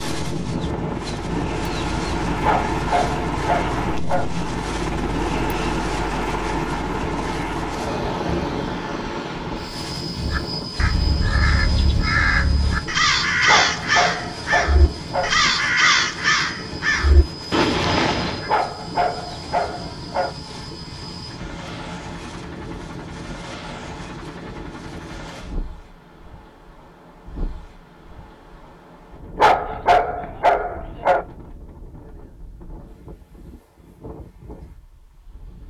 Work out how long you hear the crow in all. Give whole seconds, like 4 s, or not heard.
8 s.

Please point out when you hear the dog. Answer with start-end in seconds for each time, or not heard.
2.4-4.2, 13.4-15.3, 18.4-20.3, 29.4-31.2.